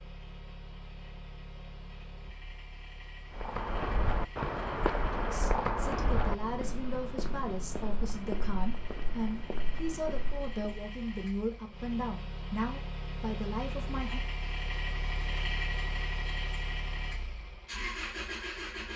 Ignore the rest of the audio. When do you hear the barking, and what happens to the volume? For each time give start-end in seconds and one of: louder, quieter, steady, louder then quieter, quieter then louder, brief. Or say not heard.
not heard.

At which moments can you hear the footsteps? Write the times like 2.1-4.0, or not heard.
3.3-10.8.